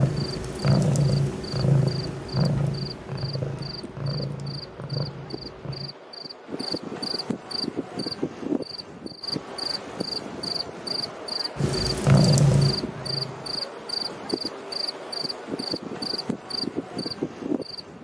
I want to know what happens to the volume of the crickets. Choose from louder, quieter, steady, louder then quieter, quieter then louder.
louder.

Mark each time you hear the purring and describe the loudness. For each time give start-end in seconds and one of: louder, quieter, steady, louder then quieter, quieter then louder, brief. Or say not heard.
0.0-6.0 quieter
11.6-13.7 brief.